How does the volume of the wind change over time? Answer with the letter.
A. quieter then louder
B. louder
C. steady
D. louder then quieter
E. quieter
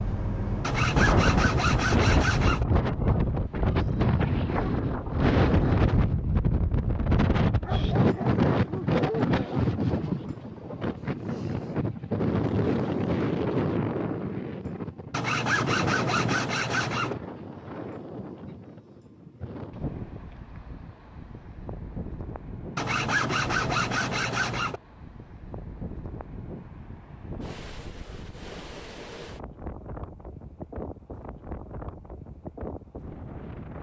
E.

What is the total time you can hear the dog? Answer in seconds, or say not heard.
2 s.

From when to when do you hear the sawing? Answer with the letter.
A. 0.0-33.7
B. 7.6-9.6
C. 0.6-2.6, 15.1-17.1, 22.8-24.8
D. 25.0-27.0
C.